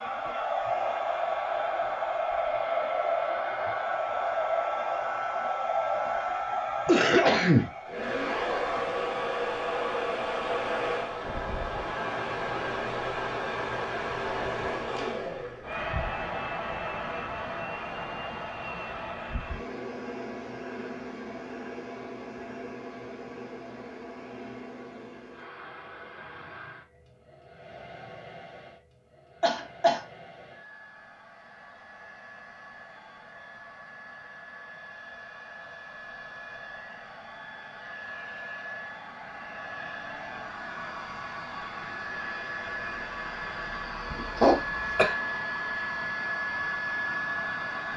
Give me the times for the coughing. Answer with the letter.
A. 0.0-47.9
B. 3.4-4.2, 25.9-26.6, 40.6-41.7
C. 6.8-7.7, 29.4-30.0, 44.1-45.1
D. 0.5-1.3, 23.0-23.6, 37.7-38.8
C.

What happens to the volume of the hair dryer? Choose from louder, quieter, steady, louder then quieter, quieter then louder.
quieter then louder.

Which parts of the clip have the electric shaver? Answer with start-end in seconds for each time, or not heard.
not heard.